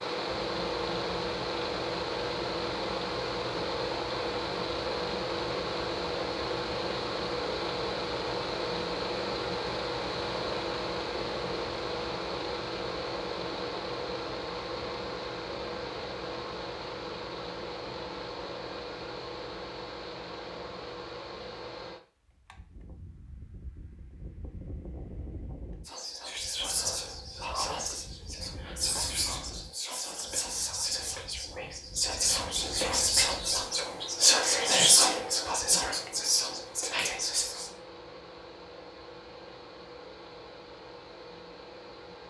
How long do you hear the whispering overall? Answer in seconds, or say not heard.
12 s.